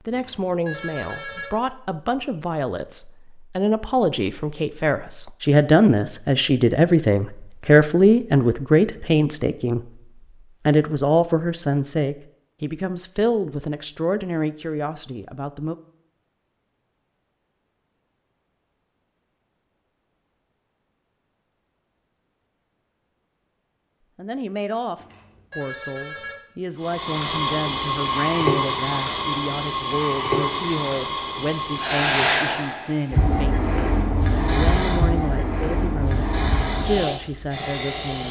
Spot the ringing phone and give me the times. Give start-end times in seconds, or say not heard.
0.1-1.4, 24.9-26.4.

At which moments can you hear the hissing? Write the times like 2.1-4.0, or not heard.
26.8-38.2.